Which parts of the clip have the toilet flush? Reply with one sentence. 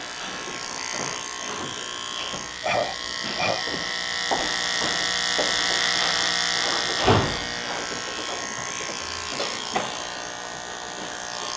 The toilet flush can't be heard in this clip.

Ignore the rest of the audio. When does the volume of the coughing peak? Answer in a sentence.
The volume of the coughing peaks at 3 seconds.